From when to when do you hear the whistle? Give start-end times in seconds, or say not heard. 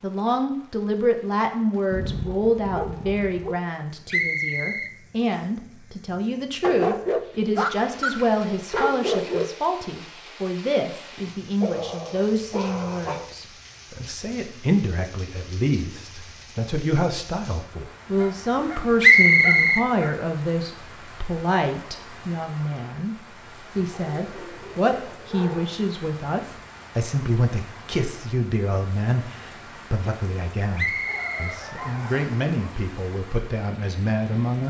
4.1-5.5, 19.0-19.9, 30.8-32.3.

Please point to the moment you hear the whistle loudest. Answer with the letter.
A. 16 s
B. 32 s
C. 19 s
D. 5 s
C.